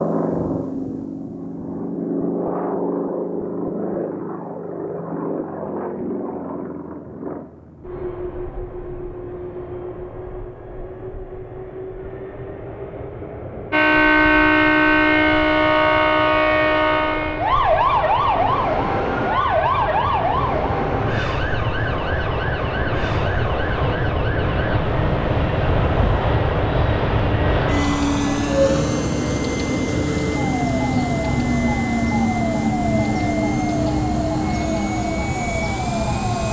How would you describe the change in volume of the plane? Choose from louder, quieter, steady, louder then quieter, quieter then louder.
quieter then louder.